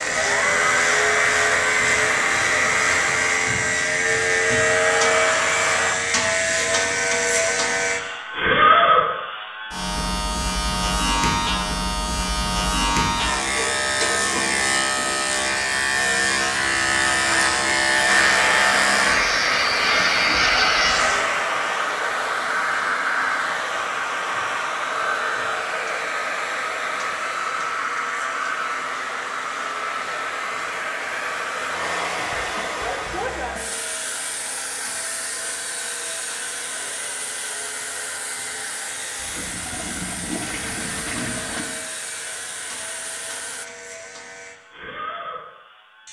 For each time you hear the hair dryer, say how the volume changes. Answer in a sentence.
You can hear the hair dryer from 0.0 to 6.0 s, getting quieter then louder; and from 18.1 to 43.6 s, getting quieter.